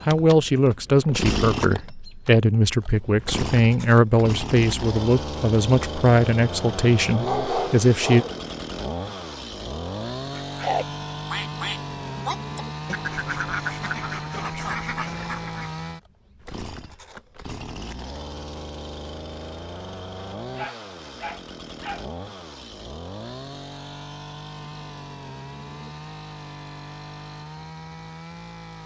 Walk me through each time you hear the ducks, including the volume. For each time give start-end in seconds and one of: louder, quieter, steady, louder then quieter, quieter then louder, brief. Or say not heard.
10.4-15.7 steady.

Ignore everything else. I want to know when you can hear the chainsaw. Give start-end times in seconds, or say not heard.
0.0-28.8.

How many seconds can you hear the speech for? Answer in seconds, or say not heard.
8 s.